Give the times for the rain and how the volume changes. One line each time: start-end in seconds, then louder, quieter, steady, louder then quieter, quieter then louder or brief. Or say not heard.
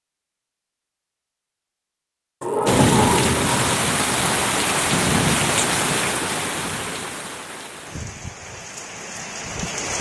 2.6-9.9 quieter.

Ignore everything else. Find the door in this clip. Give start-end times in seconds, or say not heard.
2.4-3.7.